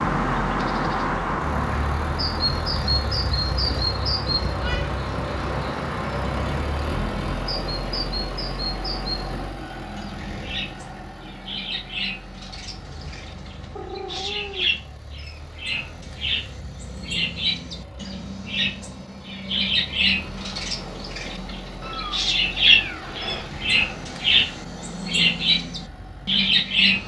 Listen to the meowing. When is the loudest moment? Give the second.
23 s.